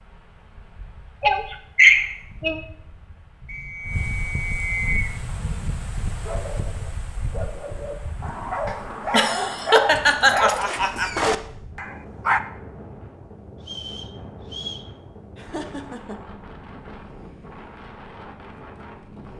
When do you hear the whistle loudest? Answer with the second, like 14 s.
5 s.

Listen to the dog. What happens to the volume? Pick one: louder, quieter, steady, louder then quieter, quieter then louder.
louder.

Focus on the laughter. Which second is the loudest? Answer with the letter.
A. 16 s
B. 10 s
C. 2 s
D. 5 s
C.